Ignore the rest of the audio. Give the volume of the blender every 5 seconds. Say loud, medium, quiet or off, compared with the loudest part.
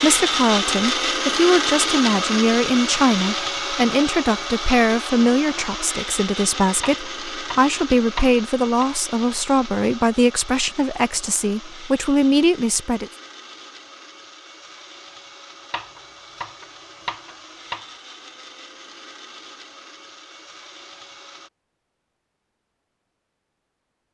loud, medium, quiet, quiet, quiet.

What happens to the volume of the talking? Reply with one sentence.
The volume of the talking stays about the same.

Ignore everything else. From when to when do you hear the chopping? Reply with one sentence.
You can hear the chopping from 6.8 to 8.8 s and from 15.7 to 17.9 s.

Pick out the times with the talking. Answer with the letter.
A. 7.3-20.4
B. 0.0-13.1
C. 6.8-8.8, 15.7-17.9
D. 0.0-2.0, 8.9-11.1
B.